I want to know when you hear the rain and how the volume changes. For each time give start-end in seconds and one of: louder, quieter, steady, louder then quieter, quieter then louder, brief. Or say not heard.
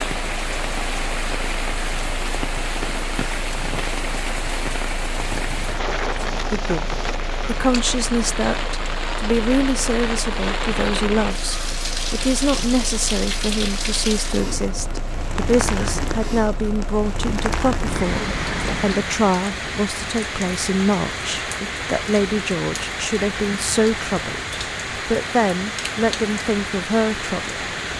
0.0-27.9 steady.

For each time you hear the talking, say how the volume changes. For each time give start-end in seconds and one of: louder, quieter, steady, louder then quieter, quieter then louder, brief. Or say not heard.
6.5-27.7 steady.